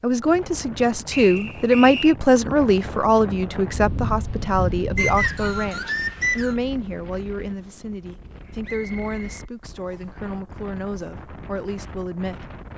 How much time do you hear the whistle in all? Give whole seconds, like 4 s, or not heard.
4 s.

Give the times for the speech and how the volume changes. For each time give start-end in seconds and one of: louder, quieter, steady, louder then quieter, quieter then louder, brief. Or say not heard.
0.0-12.6 quieter.